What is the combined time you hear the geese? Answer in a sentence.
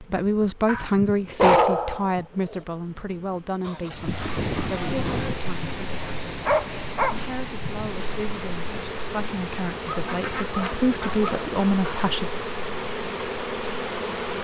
The geese can be heard for 4 seconds in total.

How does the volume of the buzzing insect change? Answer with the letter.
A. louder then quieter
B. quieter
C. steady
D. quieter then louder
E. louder
E.